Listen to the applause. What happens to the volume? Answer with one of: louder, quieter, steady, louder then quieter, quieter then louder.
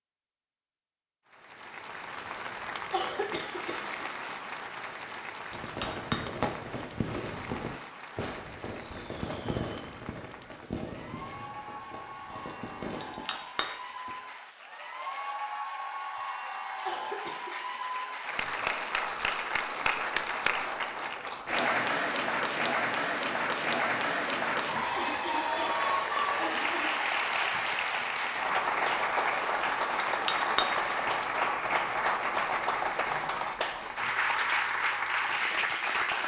louder.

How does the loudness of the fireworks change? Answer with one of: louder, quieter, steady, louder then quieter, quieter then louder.
quieter.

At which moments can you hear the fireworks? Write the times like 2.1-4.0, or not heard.
5.5-13.2.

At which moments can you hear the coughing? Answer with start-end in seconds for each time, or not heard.
2.9-4.2, 16.9-17.6, 24.9-26.9.